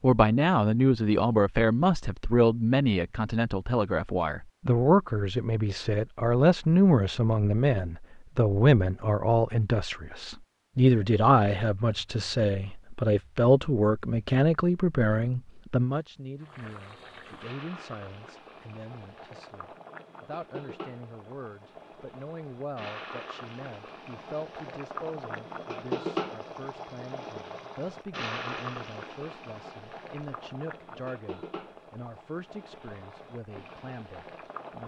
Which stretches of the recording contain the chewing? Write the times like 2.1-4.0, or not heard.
not heard.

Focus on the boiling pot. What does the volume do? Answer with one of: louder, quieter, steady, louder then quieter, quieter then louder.
louder then quieter.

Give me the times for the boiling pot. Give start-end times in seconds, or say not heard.
16.4-34.8.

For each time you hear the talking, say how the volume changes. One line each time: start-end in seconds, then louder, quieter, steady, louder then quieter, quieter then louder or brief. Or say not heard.
0.0-34.8 quieter.